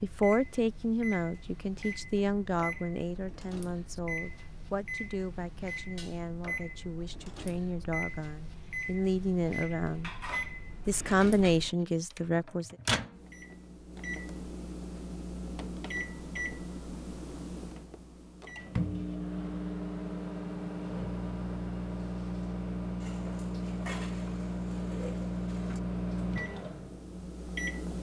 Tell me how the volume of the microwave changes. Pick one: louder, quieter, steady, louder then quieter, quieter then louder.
louder.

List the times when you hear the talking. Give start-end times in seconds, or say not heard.
0.0-10.1, 10.8-12.8.